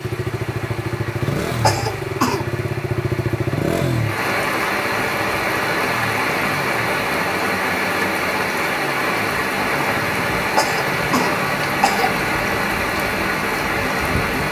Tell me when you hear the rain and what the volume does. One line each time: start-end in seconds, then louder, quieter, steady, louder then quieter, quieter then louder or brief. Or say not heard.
0.0-14.4 louder.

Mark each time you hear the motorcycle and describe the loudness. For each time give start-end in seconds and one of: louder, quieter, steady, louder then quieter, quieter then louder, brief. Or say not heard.
0.0-14.4 quieter.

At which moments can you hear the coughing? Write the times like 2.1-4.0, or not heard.
1.6-2.5, 10.6-12.2.